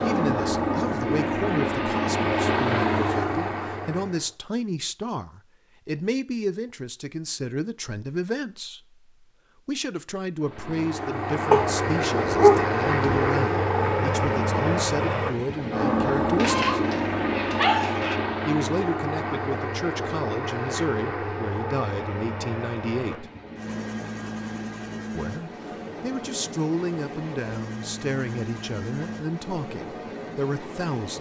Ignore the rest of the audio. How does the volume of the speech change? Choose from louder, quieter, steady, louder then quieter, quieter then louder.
steady.